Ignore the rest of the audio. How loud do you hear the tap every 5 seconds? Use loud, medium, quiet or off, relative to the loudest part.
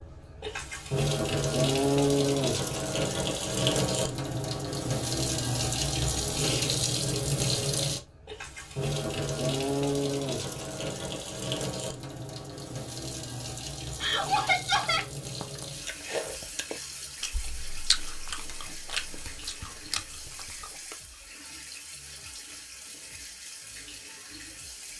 loud, loud, medium, quiet, quiet.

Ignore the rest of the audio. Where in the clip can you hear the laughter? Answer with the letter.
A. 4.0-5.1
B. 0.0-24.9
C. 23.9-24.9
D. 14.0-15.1
D.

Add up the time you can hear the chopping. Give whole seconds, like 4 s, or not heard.
not heard.